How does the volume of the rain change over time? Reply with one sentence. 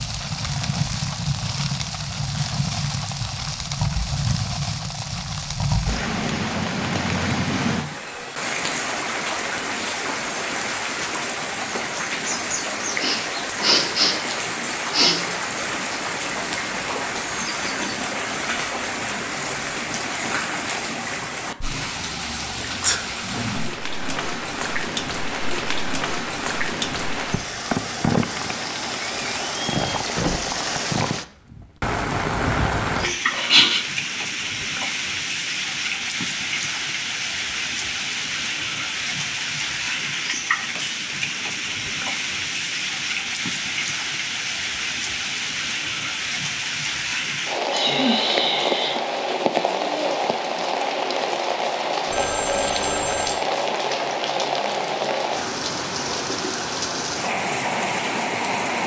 The loudness of the rain stays about the same.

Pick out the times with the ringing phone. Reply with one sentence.
The ringing phone can be heard from 52.0 to 53.5 s.